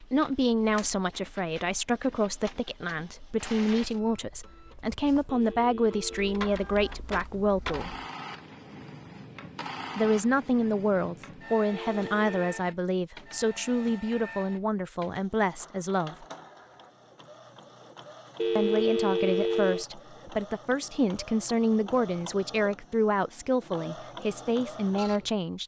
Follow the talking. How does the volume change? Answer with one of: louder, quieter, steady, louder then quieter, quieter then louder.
steady.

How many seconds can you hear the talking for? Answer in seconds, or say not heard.
21 s.